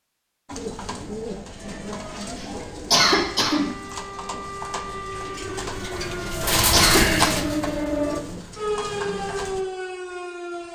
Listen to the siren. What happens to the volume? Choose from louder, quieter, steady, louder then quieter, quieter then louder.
louder.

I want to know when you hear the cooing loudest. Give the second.
7 s.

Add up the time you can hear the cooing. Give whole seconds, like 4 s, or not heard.
9 s.